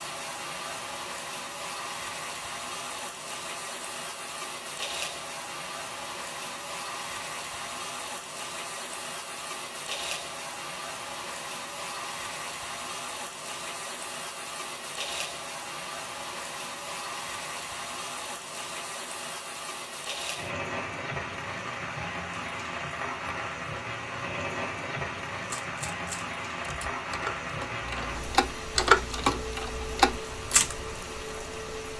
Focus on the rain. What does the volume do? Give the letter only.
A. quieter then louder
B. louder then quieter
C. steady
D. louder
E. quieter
C.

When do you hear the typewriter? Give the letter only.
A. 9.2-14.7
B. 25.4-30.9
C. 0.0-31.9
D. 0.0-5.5
B.